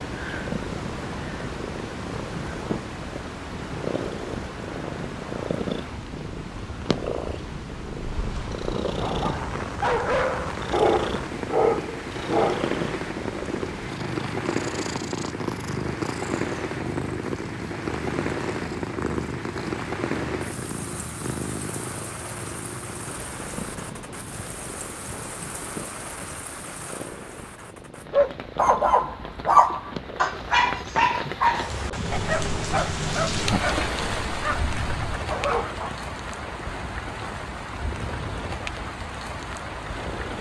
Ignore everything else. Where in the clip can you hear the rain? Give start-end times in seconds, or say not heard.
0.0-40.3.